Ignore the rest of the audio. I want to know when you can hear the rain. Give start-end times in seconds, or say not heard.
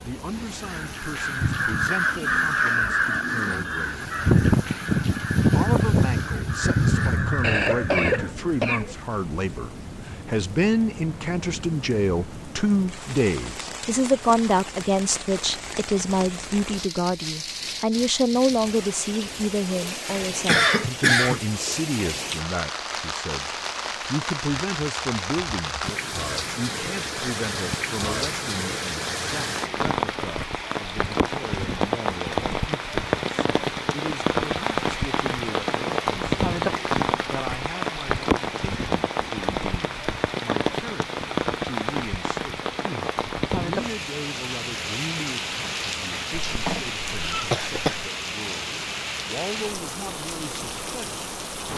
0.0-51.7.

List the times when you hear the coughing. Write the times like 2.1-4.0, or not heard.
7.4-8.9, 20.1-21.4, 46.5-48.1.